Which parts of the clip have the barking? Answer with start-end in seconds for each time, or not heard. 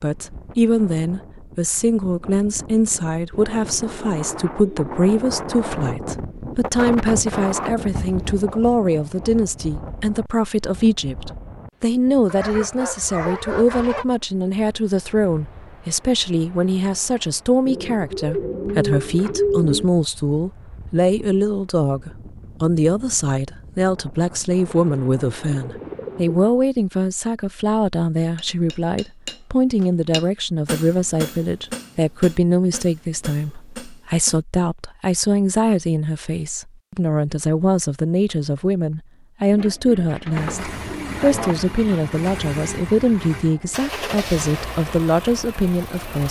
12.2-14.1.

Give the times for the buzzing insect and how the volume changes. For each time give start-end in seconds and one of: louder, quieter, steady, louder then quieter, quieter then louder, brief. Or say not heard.
not heard.